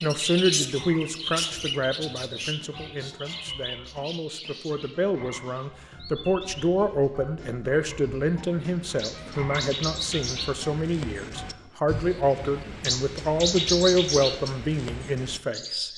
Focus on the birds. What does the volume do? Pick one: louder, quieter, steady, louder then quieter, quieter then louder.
quieter then louder.